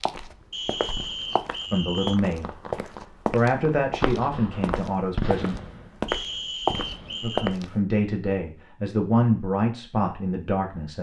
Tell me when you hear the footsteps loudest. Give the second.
7 s.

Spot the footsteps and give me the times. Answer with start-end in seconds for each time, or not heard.
0.0-7.8.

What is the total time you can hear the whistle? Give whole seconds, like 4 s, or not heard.
3 s.